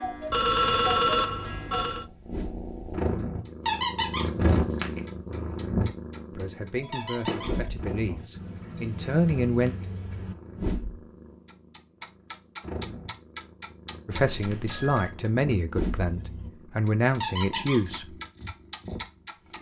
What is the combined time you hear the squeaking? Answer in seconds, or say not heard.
2 s.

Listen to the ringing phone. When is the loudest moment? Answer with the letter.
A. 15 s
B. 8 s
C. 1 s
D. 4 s
C.